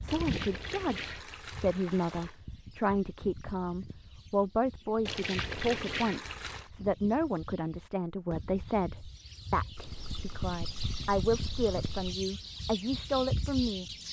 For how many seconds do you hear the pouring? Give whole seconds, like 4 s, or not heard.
6 s.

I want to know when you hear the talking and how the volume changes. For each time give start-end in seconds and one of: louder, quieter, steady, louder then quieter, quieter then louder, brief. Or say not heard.
0.0-13.8 steady.